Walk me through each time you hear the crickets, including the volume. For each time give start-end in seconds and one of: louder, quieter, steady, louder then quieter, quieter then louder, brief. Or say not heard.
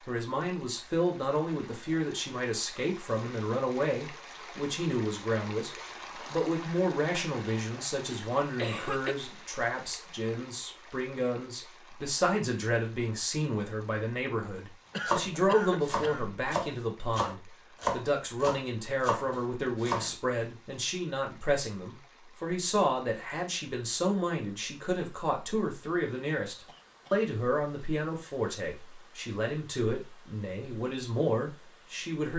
not heard.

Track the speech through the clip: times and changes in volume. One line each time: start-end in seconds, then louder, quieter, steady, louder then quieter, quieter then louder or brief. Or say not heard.
0.1-32.3 steady.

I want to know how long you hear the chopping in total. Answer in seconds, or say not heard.
5 s.